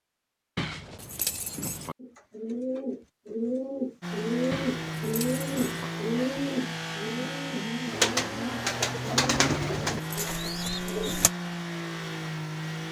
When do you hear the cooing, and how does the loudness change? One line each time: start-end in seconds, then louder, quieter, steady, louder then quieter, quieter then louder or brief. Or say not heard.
2.0-11.3 steady.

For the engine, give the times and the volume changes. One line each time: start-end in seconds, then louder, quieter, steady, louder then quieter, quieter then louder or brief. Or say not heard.
4.0-12.8 steady.